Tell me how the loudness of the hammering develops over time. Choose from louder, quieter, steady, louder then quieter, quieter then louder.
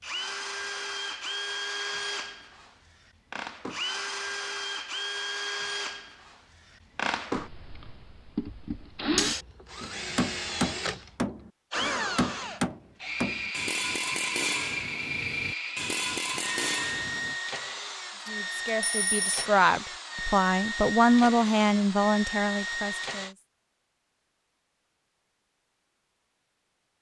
steady.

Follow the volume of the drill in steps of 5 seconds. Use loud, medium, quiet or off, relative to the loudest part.
loud, loud, loud, loud, loud, off.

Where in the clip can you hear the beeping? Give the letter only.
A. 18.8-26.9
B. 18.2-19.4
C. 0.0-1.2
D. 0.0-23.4
B.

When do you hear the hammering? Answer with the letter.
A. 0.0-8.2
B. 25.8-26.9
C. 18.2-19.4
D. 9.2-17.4
D.